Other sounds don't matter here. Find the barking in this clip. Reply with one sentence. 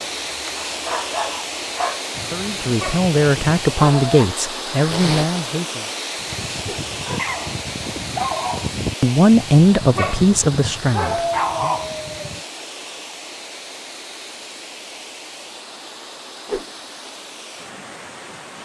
The barking can be heard from 0.1 to 4.3 s and from 6.2 to 12.4 s.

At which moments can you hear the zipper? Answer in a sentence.
The zipper can be heard from 4.8 to 5.3 s.